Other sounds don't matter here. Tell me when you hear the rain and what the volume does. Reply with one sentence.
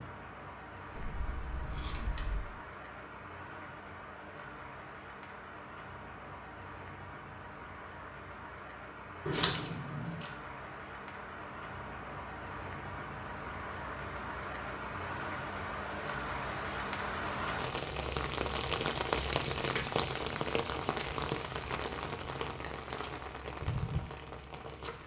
The rain can be heard from 0.0 to 25.0 s, getting louder.